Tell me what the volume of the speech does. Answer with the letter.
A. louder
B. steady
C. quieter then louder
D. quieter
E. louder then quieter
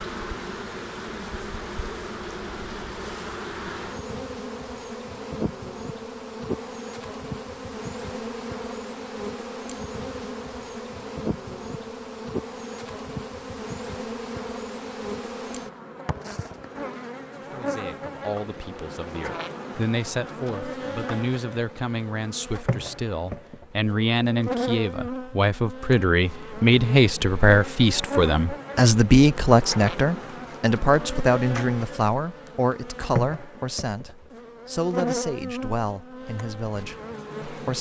E.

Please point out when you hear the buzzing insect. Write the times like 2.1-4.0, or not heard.
0.0-37.7.